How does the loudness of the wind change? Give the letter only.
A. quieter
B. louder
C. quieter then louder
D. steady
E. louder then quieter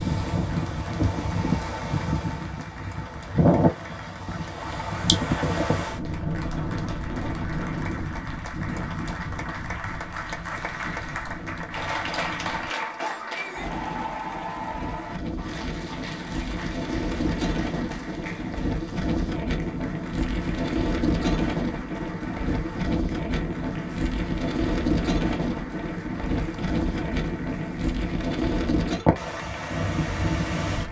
C.